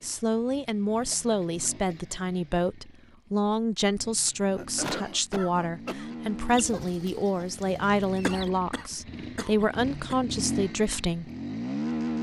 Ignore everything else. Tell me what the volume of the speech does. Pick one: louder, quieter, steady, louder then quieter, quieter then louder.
steady.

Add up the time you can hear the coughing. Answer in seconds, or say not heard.
5 s.